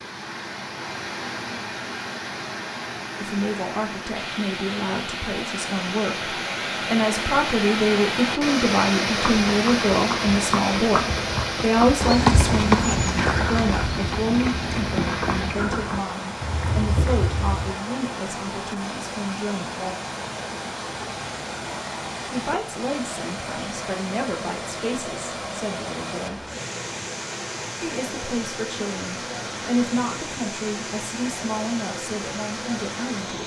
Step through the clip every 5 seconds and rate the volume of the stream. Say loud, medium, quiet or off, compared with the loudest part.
medium, loud, loud, medium, medium, medium, medium.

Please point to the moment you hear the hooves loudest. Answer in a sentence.
The volume of the hooves peaks at 12 seconds.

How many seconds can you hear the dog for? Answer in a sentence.
You can't hear the dog here.